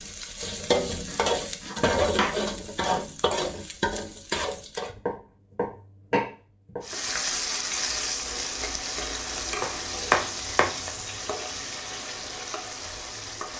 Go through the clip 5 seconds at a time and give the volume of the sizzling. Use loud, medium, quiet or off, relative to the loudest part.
loud, loud, medium.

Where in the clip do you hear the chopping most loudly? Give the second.
10 s.